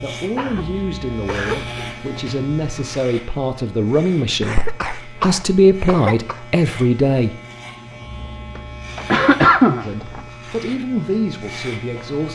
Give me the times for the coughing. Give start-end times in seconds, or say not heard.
0.3-1.9, 4.4-6.4, 8.6-10.2.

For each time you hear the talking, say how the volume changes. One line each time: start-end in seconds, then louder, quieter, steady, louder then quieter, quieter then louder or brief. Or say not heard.
0.0-7.3 louder
9.8-12.2 brief.